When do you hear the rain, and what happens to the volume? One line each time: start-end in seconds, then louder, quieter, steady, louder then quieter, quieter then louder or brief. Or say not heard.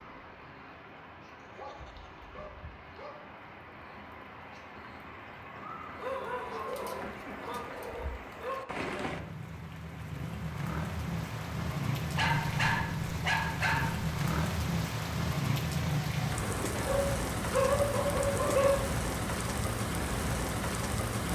0.0-21.3 louder.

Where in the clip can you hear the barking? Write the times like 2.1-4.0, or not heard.
1.4-3.2, 6.0-8.7, 12.2-14.1, 16.8-18.7.